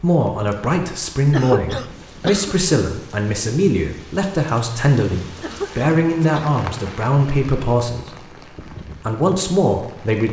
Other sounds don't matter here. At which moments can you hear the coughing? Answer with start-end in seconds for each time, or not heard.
1.3-2.5, 5.4-6.6.